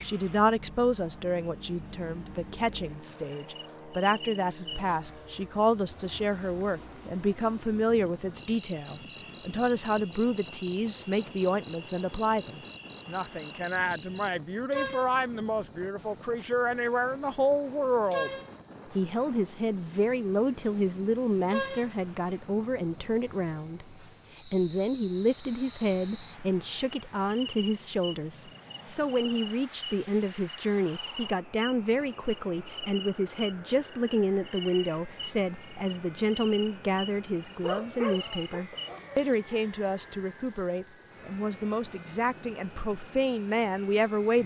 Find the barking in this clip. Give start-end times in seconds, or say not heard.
37.6-39.6.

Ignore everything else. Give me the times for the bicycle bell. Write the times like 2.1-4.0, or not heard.
not heard.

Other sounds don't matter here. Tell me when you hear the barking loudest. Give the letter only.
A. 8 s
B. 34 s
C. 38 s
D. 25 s
C.